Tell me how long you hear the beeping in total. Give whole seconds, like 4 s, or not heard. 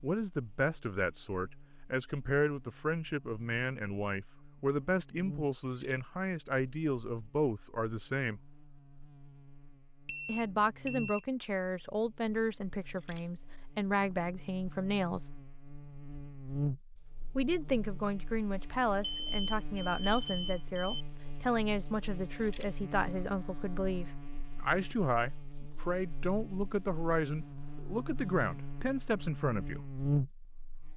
3 s.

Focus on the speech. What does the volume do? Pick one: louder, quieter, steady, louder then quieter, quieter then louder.
steady.